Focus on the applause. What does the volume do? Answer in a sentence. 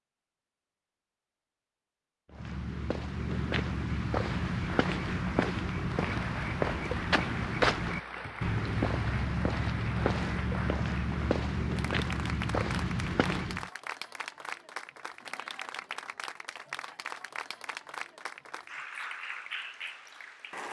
The loudness of the applause stays about the same.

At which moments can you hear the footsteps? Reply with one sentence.
You can hear the footsteps from 2.3 to 13.7 s.